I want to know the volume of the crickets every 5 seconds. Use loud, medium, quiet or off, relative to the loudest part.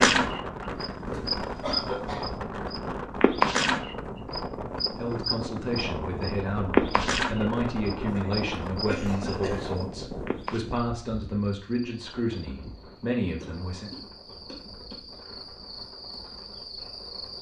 loud, loud, quiet, quiet.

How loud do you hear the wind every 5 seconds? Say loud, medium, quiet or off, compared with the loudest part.
loud, loud, medium, quiet.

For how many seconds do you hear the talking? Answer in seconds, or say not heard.
9 s.